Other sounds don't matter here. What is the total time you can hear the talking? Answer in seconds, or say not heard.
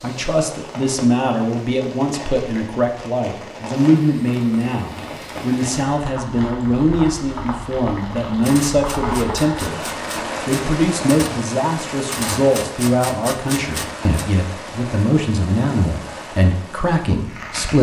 18 s.